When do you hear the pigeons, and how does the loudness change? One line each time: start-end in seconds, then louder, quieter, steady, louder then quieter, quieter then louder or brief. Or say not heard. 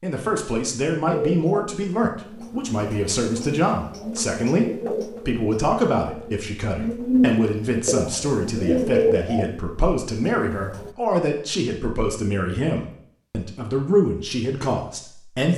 1.1-10.9 louder.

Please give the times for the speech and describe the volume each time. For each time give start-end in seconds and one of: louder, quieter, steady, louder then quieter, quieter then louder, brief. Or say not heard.
0.0-15.5 steady.